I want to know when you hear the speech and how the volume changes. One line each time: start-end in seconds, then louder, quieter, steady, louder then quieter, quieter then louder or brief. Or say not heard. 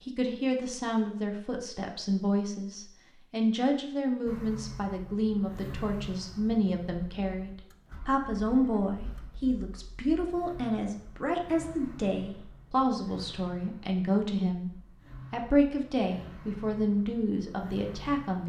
0.1-18.4 steady.